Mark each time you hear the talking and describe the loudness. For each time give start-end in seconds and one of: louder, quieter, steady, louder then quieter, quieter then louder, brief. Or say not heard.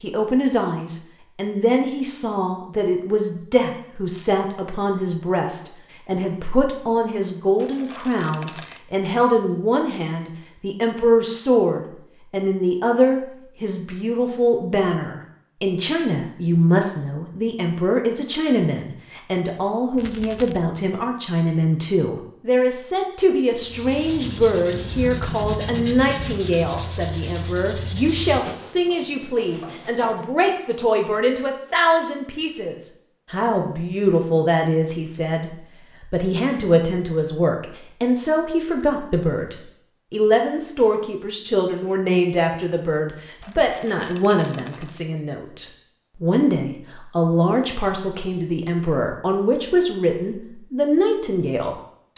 0.0-52.1 steady.